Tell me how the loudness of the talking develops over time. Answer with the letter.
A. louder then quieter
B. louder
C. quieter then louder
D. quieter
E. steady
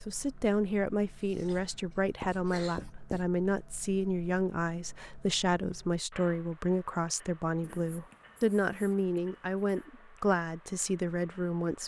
E.